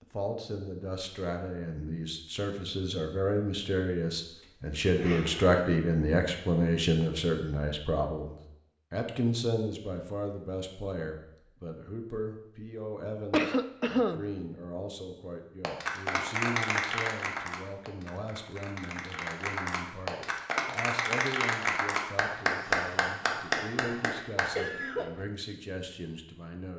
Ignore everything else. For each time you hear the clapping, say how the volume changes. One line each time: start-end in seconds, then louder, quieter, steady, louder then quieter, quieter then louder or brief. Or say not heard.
15.6-24.5 quieter then louder.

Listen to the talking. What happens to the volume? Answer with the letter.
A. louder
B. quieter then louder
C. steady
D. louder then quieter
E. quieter
E.